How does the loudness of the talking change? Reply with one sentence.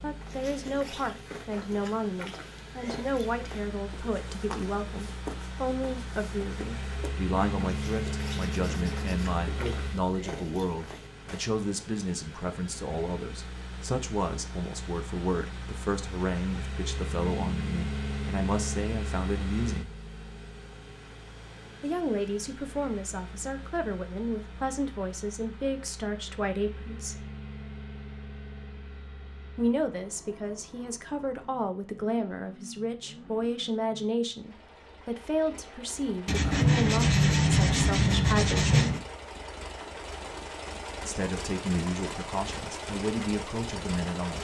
The volume of the talking stays about the same.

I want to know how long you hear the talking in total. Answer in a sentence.
The talking can be heard for 38 seconds in total.